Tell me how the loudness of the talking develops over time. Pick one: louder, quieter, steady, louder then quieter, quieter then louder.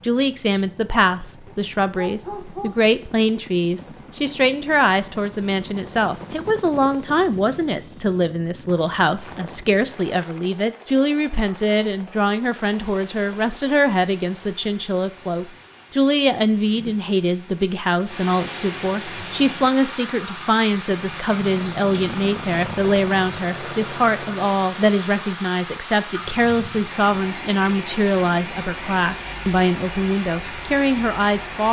steady.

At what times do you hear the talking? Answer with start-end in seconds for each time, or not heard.
0.0-31.6.